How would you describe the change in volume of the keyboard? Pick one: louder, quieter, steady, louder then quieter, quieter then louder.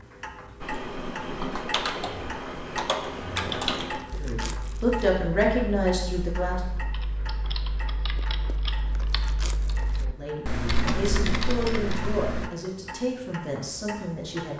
quieter then louder.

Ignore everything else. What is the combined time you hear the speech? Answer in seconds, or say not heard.
7 s.